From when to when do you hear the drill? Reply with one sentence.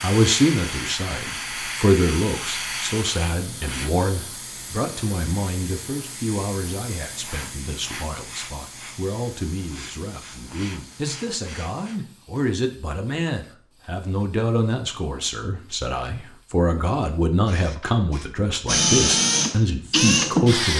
You can hear the drill from 18.6 to 20.7 s.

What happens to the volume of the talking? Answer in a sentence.
The loudness of the talking goes down, then up.